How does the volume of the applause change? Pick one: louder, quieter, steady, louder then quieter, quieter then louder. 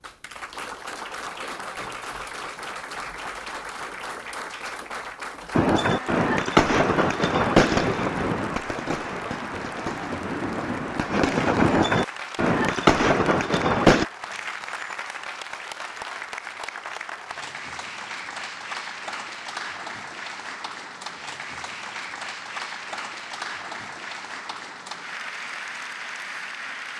steady.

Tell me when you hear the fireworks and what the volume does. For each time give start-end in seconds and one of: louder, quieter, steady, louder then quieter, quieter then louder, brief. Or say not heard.
5.5-14.1 quieter then louder.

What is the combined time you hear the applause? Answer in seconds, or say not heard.
27 s.